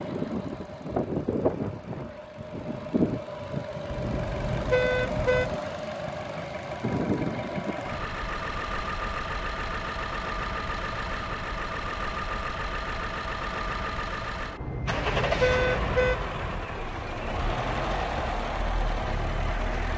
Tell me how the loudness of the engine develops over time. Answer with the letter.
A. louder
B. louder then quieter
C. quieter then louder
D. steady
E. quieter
D.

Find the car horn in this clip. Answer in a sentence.
The car horn can be heard from 3.9 to 5.5 s and from 14.6 to 16.6 s.